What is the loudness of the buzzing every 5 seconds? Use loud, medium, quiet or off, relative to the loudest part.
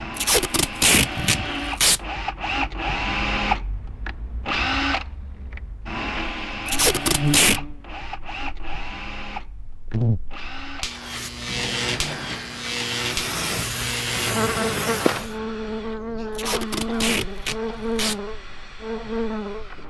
off, loud, loud, loud.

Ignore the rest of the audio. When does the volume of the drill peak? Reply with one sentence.
The volume of the drill peaks at 3 seconds.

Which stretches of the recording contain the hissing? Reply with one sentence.
The hissing can be heard from 11.0 to 15.3 s.